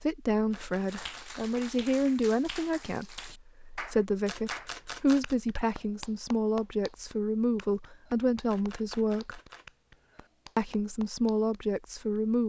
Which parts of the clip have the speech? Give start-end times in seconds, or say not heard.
0.0-9.4, 10.6-12.4.